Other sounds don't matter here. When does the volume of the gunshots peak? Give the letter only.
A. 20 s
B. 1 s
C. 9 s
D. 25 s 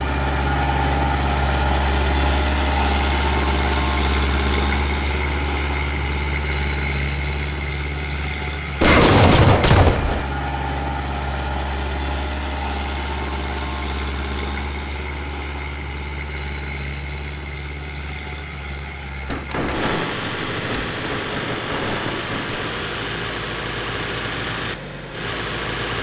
C.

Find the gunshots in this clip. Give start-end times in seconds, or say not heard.
8.8-10.2, 19.2-22.6.